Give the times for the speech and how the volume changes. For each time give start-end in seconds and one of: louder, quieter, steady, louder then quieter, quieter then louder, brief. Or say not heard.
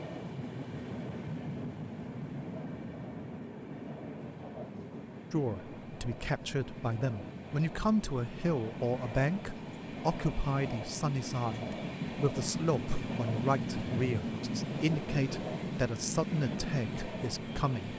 5.3-17.9 steady.